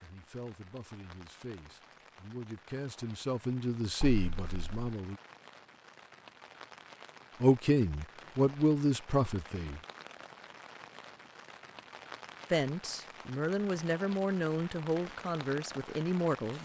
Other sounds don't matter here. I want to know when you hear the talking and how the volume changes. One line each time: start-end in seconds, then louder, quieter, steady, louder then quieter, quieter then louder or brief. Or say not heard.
0.0-5.2 louder
7.4-9.8 brief
12.5-16.6 steady.